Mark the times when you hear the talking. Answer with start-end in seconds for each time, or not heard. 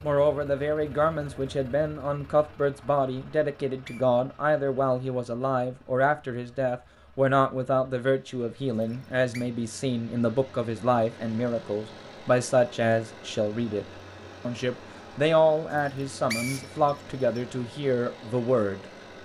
0.0-13.8, 14.4-19.2.